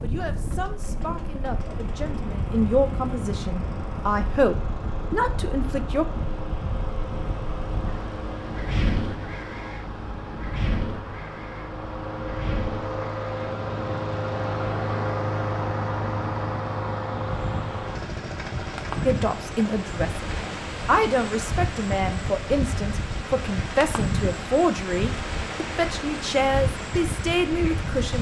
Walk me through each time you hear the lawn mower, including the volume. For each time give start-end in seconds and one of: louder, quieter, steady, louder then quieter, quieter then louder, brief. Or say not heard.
0.0-28.1 louder then quieter.